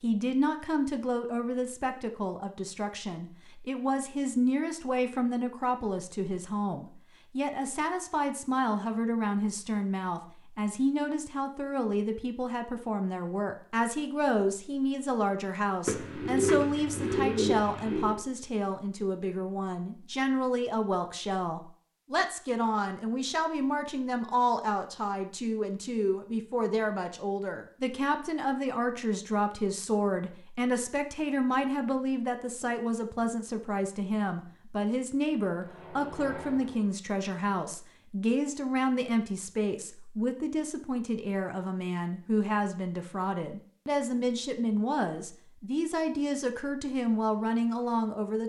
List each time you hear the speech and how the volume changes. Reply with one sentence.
The speech can be heard from 0.0 to 48.4 s, at a steady volume.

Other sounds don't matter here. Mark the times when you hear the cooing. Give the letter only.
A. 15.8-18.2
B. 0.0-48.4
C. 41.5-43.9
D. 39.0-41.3
A.